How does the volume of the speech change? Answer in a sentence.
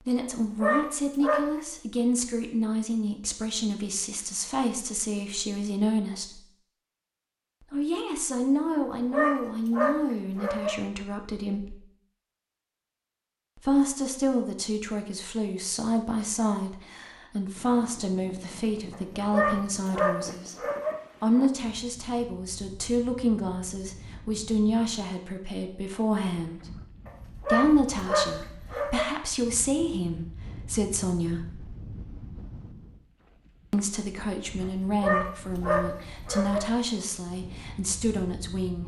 The loudness of the speech stays about the same.